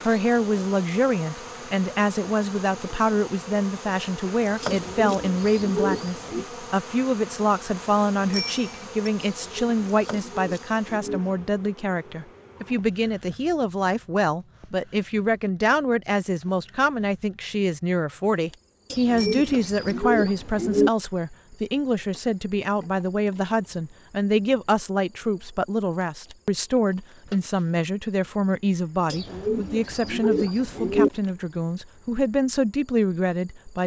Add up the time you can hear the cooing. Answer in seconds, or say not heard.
8 s.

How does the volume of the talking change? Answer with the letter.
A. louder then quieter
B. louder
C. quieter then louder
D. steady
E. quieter
D.